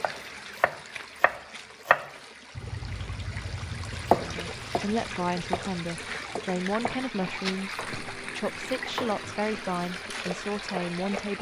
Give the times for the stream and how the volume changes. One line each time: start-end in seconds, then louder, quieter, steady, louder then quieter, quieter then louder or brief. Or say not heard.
0.0-11.3 louder.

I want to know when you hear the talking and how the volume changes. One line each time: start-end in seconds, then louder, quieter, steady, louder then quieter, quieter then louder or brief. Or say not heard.
4.2-11.3 steady.